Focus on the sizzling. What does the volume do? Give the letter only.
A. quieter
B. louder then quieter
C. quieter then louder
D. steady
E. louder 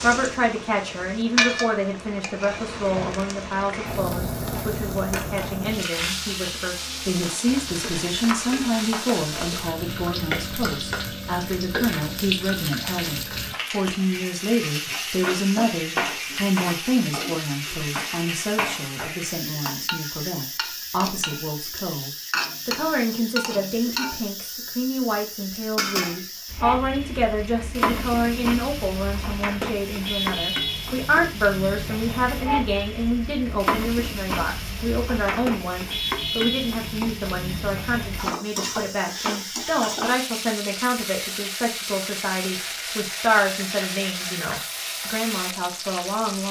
D.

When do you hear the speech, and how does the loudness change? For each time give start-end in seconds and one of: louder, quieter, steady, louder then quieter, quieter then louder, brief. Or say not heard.
0.0-46.4 steady.